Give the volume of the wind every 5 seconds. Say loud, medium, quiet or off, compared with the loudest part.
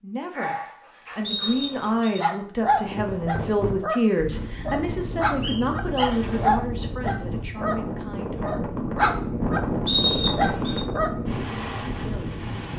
medium, loud, loud.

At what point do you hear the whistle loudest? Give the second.
10 s.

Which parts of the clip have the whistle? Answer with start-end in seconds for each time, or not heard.
1.2-2.2, 5.4-6.2, 9.8-10.8.